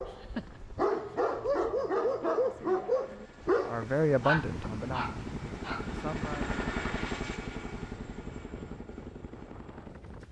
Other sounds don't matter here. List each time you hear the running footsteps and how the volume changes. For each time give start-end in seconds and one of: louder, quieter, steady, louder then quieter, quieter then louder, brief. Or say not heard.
not heard.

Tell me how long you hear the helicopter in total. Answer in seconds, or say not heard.
10 s.